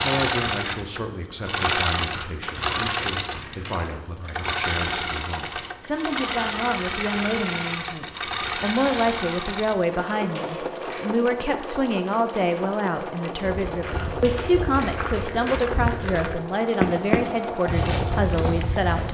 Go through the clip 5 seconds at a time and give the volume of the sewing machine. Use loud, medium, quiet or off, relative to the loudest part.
loud, loud, medium, medium.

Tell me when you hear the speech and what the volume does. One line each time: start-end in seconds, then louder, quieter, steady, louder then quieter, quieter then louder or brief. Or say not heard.
0.0-19.0 louder.